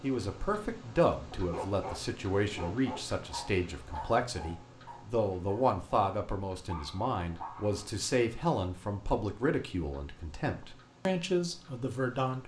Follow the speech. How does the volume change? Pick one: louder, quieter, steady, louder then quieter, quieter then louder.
steady.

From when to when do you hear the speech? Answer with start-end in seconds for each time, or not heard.
0.0-12.4.